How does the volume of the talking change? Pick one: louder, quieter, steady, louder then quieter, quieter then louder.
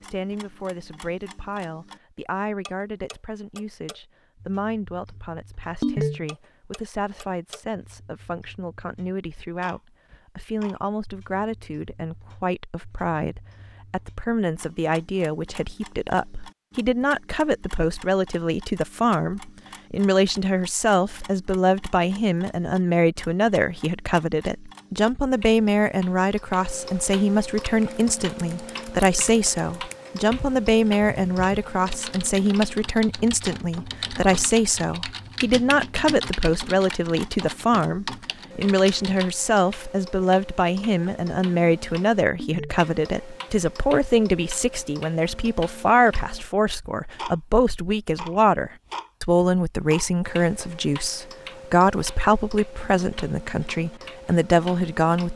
louder.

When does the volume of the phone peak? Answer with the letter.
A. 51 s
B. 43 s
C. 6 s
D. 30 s
C.